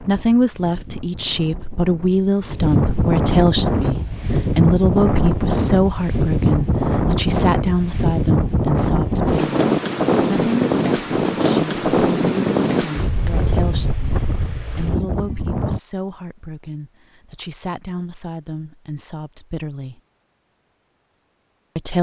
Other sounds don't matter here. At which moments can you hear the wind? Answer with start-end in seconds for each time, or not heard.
0.0-15.8.